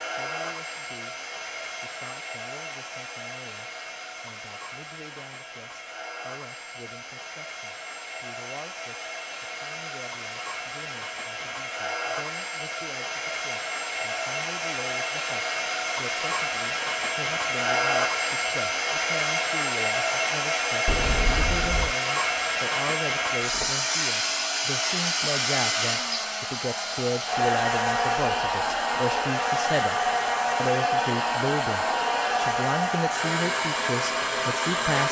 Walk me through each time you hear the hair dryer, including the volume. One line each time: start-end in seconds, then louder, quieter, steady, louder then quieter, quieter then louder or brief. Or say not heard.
0.0-35.0 louder.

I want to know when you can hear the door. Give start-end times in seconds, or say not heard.
20.9-21.9.